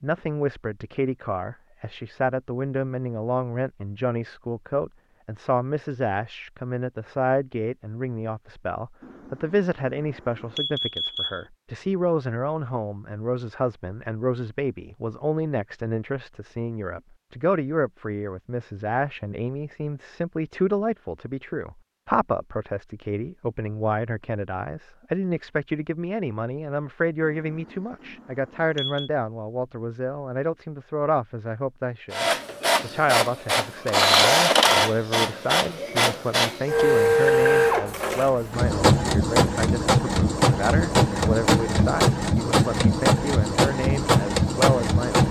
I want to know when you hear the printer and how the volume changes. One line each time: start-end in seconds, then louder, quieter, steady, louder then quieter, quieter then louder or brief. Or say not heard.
32.1-45.2 steady.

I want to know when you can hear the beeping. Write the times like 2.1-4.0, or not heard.
9.0-11.4, 27.2-29.1.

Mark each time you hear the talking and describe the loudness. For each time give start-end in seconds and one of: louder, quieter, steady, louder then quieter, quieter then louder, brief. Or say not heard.
0.0-45.2 steady.